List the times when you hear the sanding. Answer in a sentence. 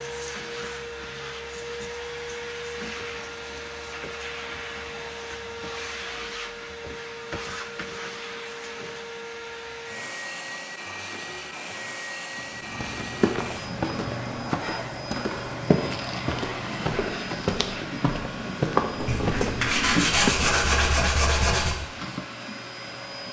The sanding can be heard from 18.9 to 21.8 s.